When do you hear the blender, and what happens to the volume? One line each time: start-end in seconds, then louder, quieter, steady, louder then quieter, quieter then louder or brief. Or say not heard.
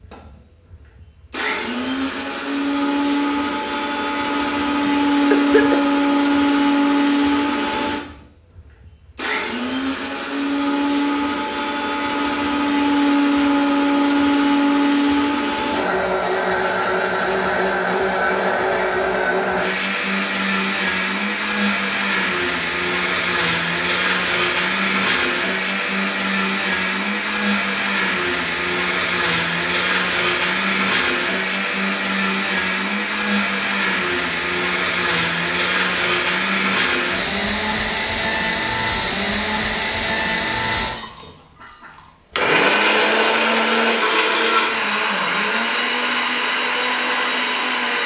0.0-48.0 steady.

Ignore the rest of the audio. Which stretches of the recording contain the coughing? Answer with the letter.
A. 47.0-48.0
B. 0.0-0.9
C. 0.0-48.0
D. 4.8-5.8
D.